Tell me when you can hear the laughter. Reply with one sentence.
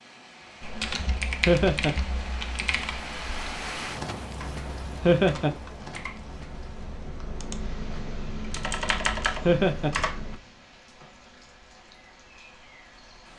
The laughter can be heard from 1.4 to 1.9 s, from 5.0 to 5.5 s and from 9.4 to 9.9 s.